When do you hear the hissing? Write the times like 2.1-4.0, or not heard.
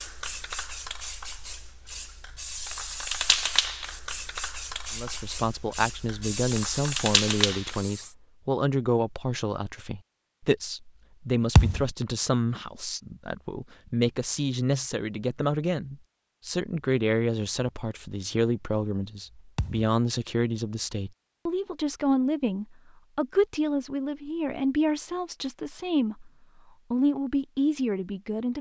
0.0-8.2.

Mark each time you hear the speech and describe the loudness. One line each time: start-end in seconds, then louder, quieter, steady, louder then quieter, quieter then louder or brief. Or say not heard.
5.0-26.3 steady
26.9-28.5 brief.